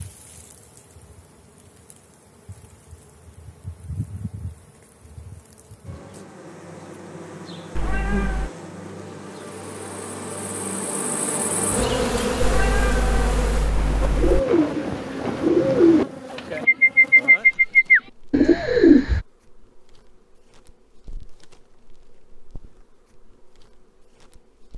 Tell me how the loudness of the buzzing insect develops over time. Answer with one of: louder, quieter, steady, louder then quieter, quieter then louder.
louder then quieter.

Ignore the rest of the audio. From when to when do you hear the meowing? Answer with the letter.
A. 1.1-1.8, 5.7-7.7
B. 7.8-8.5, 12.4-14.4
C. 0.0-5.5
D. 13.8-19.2
B.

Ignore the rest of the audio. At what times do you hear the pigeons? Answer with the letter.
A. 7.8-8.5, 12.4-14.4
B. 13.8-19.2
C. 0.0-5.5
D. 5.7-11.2
B.